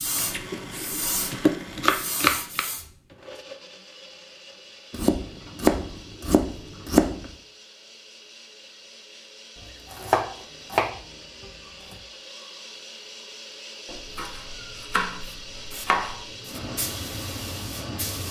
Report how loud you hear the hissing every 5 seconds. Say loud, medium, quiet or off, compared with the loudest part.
loud, off, off, loud.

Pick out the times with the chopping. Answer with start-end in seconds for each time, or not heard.
0.1-2.6, 4.9-7.3, 9.6-11.9, 13.8-16.2.